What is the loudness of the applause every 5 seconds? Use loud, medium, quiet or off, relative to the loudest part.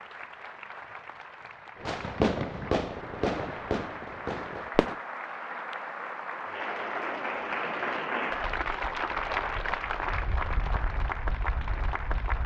medium, loud, loud.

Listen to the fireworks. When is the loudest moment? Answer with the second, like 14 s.
2 s.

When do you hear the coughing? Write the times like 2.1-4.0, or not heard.
not heard.